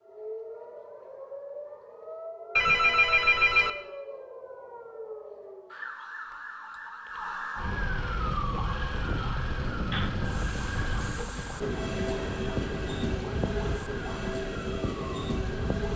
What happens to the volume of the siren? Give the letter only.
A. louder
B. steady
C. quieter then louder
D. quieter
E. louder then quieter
E.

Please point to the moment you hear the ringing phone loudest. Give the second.
3 s.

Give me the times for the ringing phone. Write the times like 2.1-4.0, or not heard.
2.5-3.7, 9.9-11.2.